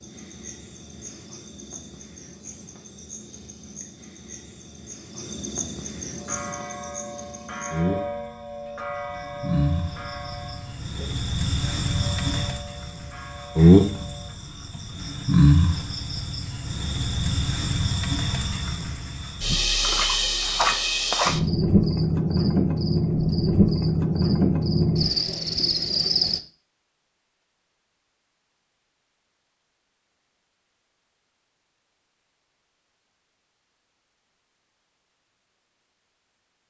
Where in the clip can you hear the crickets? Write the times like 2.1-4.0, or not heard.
0.0-26.4.